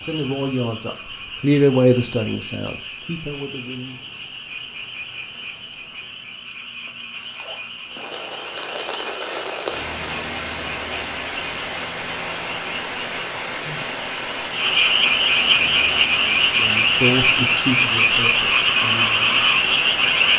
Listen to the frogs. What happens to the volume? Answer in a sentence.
The loudness of the frogs goes up.